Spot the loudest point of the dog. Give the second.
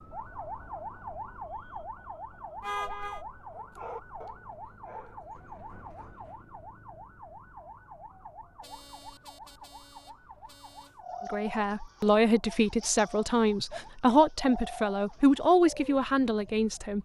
4 s.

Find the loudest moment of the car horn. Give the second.
3 s.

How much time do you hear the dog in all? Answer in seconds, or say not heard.
2 s.